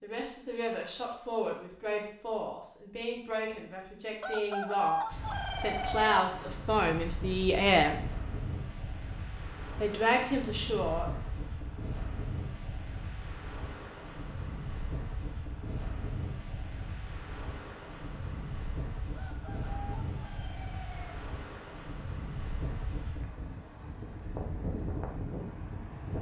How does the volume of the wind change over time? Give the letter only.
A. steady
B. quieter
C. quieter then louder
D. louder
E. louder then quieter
A.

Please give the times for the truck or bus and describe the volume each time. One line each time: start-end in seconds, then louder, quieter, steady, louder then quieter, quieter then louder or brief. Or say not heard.
not heard.